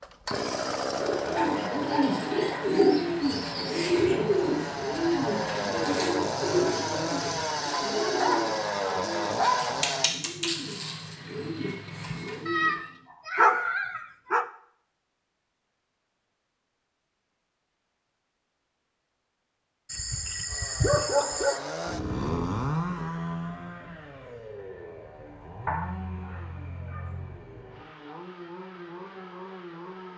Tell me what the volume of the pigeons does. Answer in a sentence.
The loudness of the pigeons goes down.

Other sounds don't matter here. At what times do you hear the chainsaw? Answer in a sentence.
You can hear the chainsaw from 0.0 to 10.1 s and from 20.4 to 30.1 s.